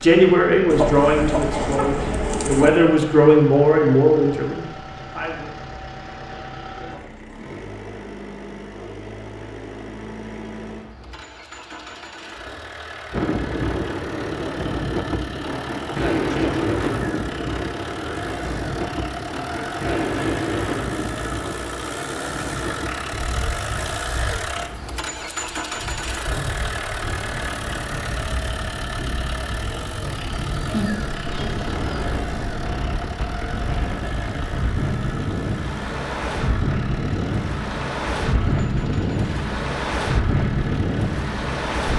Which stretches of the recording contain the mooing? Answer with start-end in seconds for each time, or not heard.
not heard.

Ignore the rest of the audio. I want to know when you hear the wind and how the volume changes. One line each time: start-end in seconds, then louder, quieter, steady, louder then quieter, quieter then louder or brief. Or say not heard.
13.1-41.9 quieter then louder.